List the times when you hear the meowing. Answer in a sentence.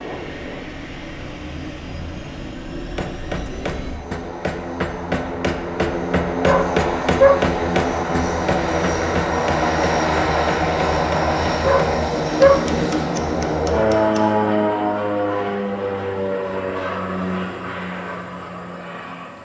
You can't hear the meowing here.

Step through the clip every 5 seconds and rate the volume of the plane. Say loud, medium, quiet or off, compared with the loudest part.
quiet, loud, loud, medium.